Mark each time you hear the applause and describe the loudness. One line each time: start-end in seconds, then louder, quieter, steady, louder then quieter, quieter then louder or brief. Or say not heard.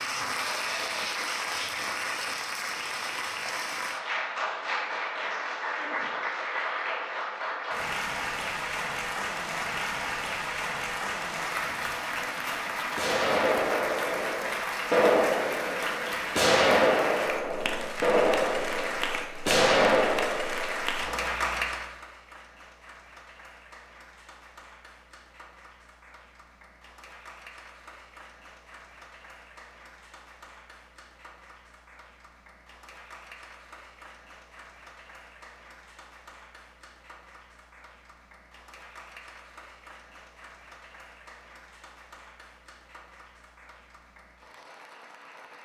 0.0-45.5 quieter.